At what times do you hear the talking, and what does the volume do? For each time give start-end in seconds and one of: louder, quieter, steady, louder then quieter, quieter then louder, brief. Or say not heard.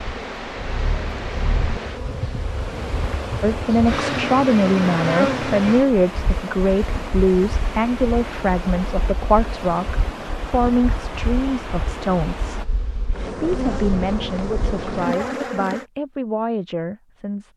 3.4-17.5 quieter.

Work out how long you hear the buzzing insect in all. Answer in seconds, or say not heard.
16 s.